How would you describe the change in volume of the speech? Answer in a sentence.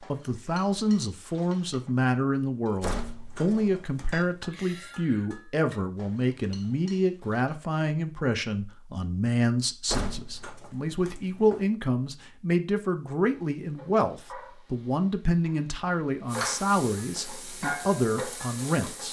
The volume of the speech stays about the same.